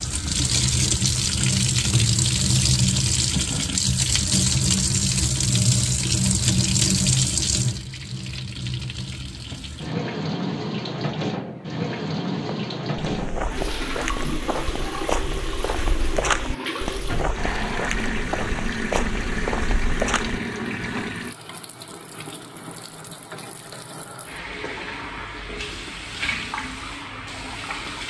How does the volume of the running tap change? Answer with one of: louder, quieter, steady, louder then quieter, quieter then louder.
quieter.